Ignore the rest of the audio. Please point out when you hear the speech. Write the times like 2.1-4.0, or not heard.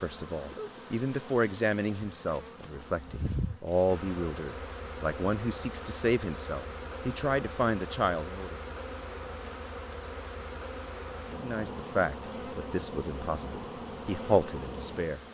0.0-8.6, 11.3-15.2.